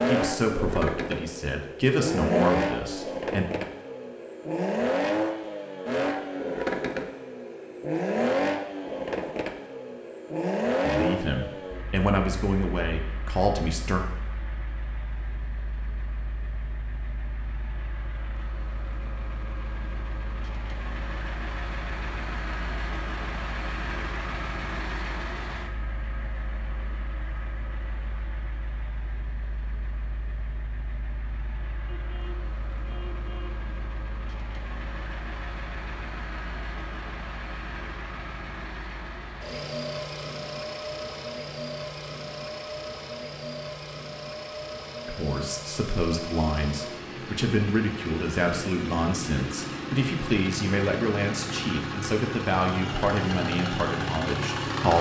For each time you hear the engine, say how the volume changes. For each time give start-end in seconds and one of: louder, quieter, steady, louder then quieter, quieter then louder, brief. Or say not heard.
0.0-54.9 quieter then louder.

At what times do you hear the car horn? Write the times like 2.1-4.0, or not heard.
31.9-33.6.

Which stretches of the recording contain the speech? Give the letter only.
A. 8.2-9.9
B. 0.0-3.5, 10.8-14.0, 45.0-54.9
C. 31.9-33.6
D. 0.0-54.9
B.